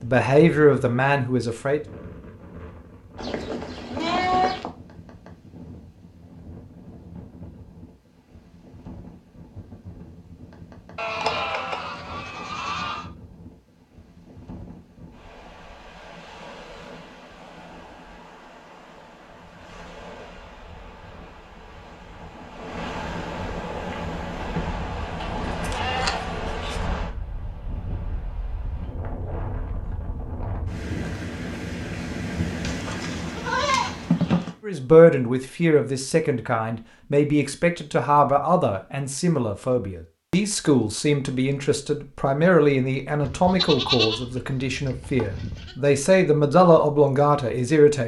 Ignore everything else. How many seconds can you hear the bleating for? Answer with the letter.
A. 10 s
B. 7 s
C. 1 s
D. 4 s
A.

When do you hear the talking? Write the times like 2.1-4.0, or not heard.
0.0-1.8, 34.6-48.0.